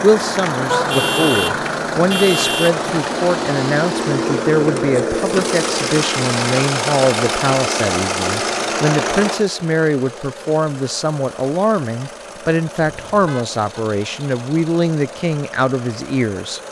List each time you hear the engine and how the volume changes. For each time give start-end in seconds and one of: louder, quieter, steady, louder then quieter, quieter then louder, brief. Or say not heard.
0.0-16.6 quieter.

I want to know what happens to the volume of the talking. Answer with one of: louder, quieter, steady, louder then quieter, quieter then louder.
steady.